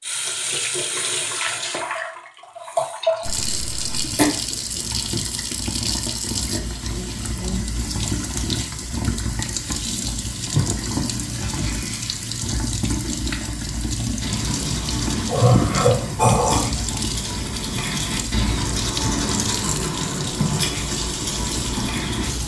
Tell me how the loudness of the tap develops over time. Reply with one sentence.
The loudness of the tap stays about the same.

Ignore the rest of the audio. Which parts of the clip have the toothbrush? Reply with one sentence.
You can hear the toothbrush from 10.5 to 12.2 s and from 14.2 to 22.4 s.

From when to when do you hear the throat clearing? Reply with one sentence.
You can hear the throat clearing from 3.2 to 4.2 s and from 15.2 to 16.6 s.